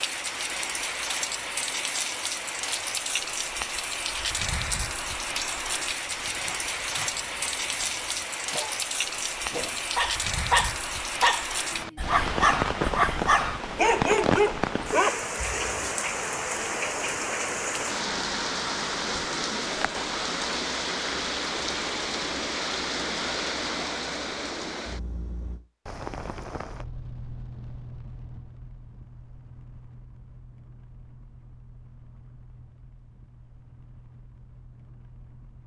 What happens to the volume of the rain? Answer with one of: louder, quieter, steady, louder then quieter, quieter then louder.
quieter.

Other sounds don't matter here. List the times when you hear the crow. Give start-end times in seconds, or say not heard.
not heard.